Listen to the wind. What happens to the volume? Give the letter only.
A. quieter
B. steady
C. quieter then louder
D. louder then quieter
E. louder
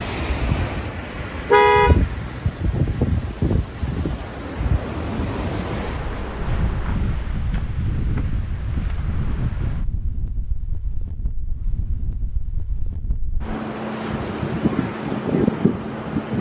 C.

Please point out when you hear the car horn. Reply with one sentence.
You can hear the car horn from 1.5 to 2.6 s.